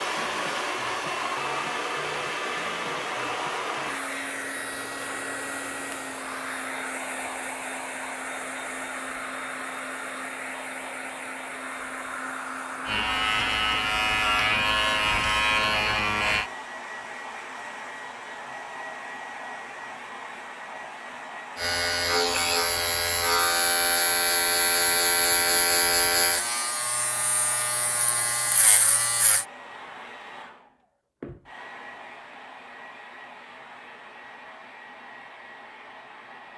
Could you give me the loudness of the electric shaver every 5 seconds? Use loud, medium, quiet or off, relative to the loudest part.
off, off, loud, loud, loud, loud, off, off.